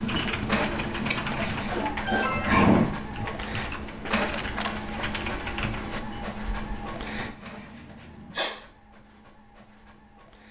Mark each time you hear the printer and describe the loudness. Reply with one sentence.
The printer can be heard from 0.0 to 10.4 s, getting quieter.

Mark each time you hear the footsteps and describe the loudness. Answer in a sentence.
You can't hear the footsteps here.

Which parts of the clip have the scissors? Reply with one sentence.
The scissors can be heard from 0.0 to 1.8 s and from 6.0 to 8.4 s.